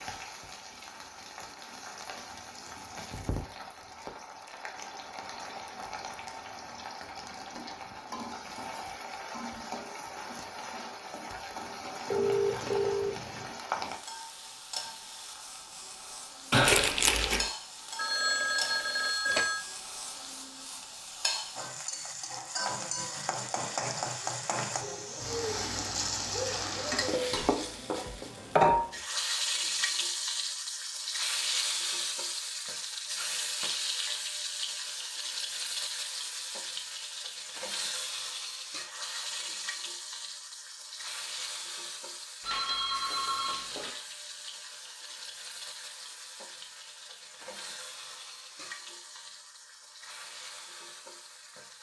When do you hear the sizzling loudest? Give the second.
29 s.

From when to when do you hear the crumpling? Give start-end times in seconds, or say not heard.
16.5-17.5.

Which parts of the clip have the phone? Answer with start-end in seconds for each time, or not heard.
12.1-13.4, 17.9-19.6, 42.4-43.9.